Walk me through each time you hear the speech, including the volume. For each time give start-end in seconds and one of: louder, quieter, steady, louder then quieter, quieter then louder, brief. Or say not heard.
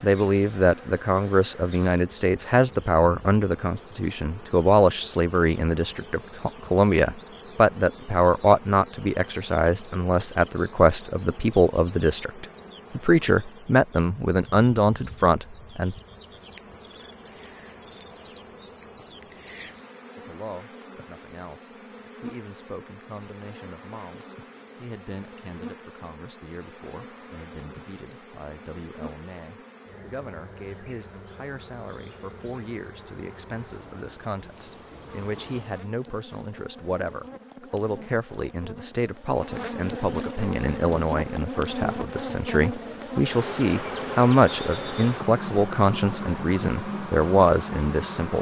0.0-15.9 steady
20.1-48.3 louder.